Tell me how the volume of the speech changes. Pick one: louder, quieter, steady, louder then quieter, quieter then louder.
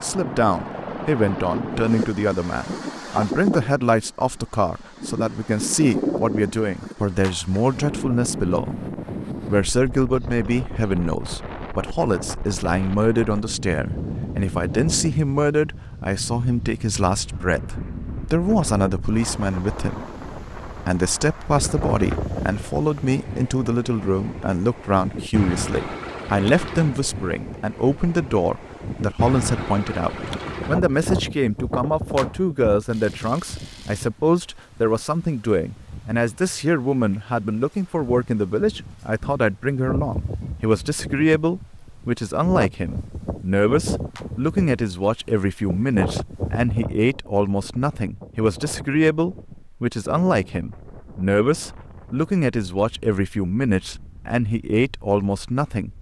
steady.